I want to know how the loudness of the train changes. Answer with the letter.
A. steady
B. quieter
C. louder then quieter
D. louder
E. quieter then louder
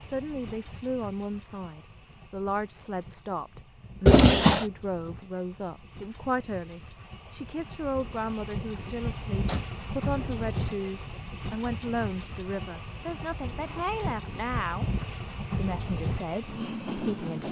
D.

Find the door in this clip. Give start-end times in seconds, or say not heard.
4.0-4.7, 8.8-9.7.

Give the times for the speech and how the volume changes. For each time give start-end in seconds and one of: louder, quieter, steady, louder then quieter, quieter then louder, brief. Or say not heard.
0.0-17.4 steady.